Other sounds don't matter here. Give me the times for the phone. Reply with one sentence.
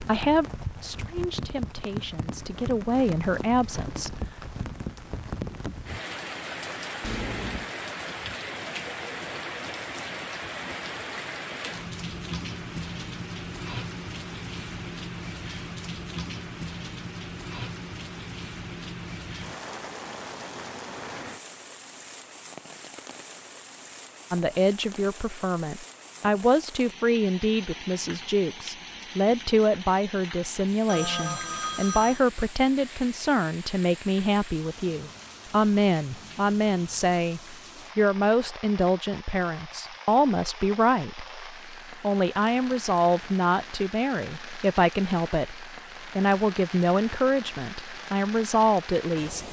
The phone can be heard from 7.0 to 7.7 s and from 30.9 to 32.2 s.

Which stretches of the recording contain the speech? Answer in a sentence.
The speech can be heard from 0.0 to 4.2 s and from 24.3 to 49.4 s.